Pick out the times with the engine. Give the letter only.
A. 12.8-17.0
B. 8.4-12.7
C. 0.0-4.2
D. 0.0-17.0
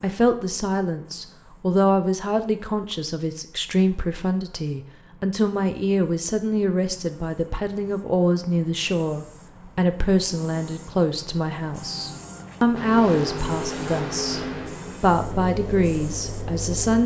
A.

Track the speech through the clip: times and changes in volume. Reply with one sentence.
You can hear the speech from 0.0 to 17.0 s, at a steady volume.